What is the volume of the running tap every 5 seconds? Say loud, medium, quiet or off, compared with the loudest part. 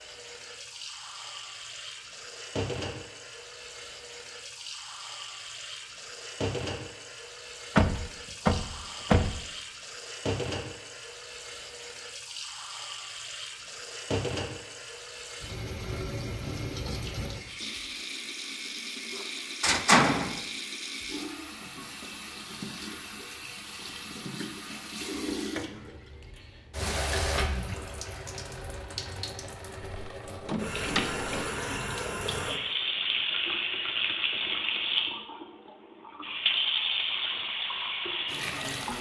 medium, medium, medium, medium, medium, medium, loud, loud.